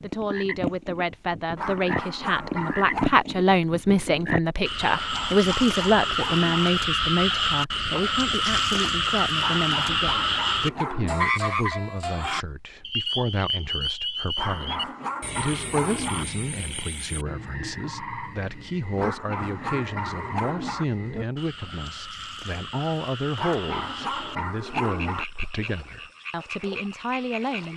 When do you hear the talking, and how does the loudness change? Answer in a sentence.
The talking can be heard from 0.0 to 27.7 s, getting quieter.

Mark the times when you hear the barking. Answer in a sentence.
The barking can be heard from 1.6 to 3.1 s, from 4.8 to 6.7 s, from 9.3 to 11.3 s, from 14.3 to 16.2 s, from 18.9 to 20.9 s and from 23.4 to 25.2 s.